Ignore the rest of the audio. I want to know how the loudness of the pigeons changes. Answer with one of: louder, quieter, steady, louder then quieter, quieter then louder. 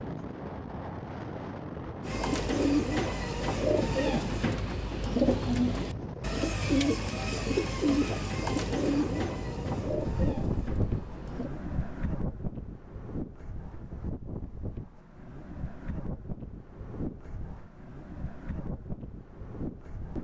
quieter.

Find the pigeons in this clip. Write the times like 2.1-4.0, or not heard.
2.0-11.5.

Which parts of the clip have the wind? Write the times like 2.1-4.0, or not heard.
0.0-20.1.